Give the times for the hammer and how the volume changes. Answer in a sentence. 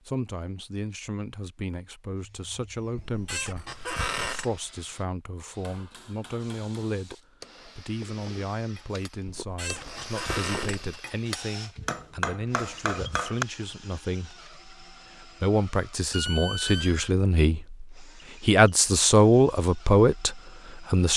The hammer can be heard from 5.6 to 13.4 s, getting louder.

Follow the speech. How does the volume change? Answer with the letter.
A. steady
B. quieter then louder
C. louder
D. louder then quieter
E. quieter
C.